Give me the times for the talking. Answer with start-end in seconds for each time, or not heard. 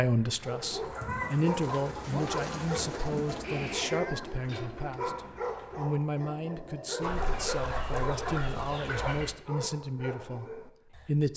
0.0-11.3.